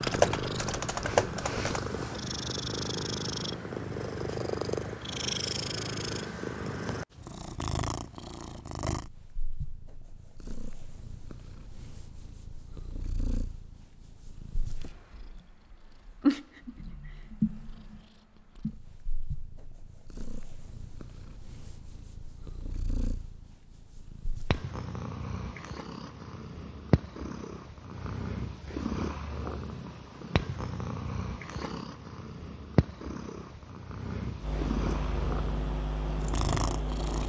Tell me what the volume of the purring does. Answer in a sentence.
The volume of the purring goes down, then up.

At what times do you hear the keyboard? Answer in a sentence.
You can hear the keyboard from 0.0 to 1.8 s and from 34.4 to 37.2 s.